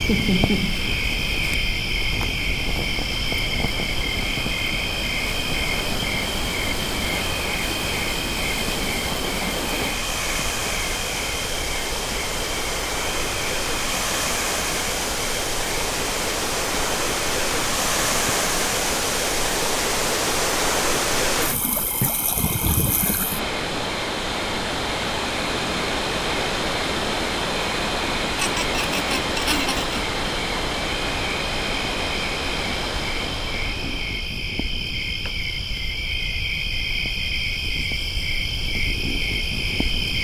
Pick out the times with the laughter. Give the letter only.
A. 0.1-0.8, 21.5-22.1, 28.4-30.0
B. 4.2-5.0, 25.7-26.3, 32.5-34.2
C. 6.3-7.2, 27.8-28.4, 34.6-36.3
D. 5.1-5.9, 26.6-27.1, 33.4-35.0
A.